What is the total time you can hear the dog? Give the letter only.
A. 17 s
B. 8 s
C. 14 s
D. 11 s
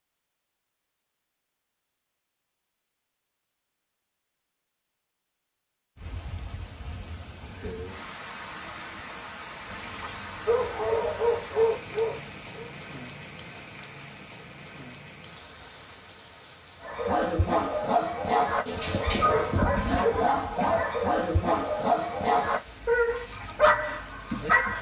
D.